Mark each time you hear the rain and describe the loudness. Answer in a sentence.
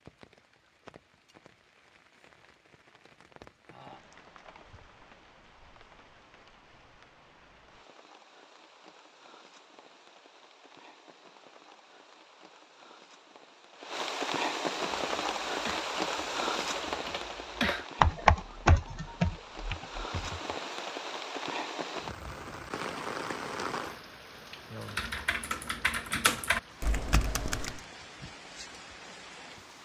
The rain can be heard from 0.0 to 29.8 s, getting louder then quieter.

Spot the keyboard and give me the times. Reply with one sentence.
You can hear the keyboard from 14.9 to 20.6 s and from 24.8 to 27.9 s.